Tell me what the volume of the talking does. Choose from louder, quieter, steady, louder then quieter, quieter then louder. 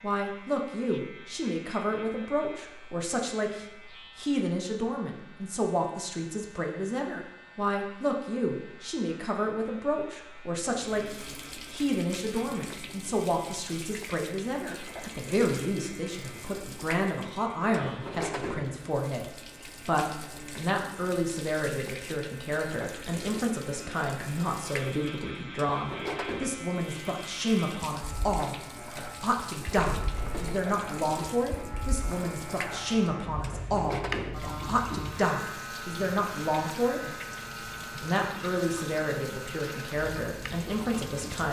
steady.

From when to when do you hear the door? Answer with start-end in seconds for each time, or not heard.
29.8-30.6.